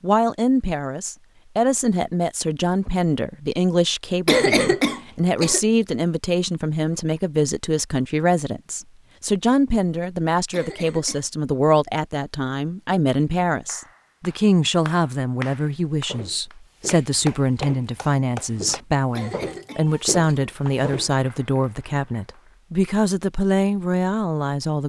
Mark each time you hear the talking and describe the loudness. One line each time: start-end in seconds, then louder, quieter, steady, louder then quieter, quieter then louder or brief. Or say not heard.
0.0-24.8 steady.